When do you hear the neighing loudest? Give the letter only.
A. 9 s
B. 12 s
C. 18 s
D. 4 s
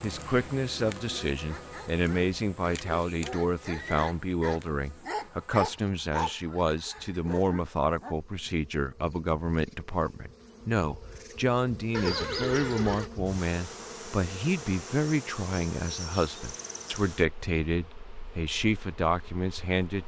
B.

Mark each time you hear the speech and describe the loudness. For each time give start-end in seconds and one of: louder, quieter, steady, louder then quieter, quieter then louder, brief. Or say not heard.
0.0-20.0 steady.